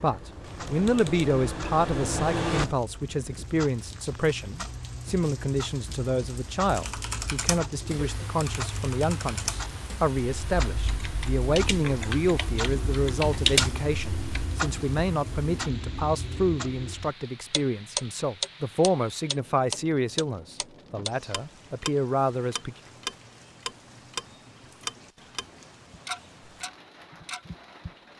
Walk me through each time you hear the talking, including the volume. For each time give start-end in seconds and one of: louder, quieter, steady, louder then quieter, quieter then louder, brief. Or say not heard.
0.0-22.8 steady.